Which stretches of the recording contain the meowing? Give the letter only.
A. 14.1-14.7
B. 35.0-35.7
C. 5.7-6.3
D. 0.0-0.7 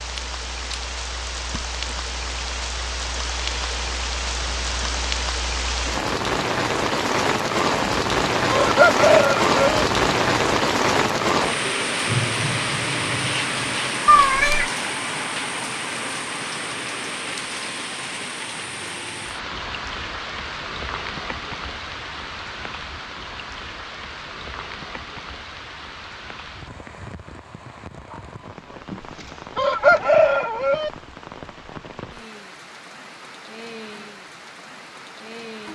A.